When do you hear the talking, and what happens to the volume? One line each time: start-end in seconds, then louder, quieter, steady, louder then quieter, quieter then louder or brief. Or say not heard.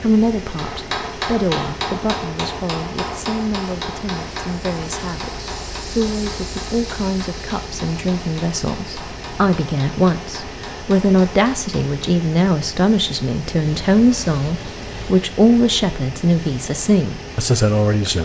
0.0-18.1 louder.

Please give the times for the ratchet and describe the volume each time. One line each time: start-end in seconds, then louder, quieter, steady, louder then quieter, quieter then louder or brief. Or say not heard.
not heard.